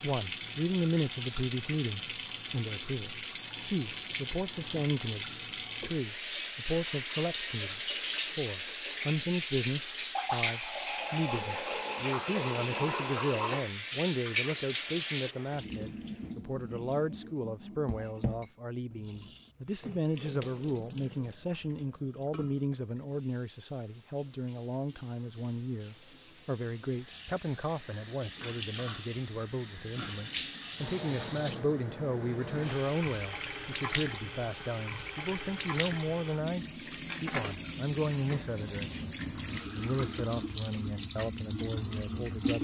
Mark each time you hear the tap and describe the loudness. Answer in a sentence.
You can hear the tap from 0.0 to 42.5 s, getting quieter then louder.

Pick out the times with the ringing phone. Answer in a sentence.
You can't hear the ringing phone here.